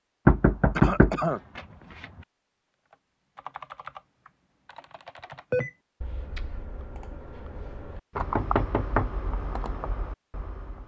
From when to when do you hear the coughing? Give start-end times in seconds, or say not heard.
0.8-1.4.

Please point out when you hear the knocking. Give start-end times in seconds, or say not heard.
0.2-2.0, 8.2-9.1.